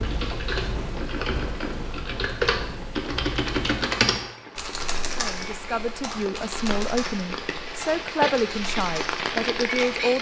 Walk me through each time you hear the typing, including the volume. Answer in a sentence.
You can hear the typing from 0.0 to 10.1 s, getting louder then quieter.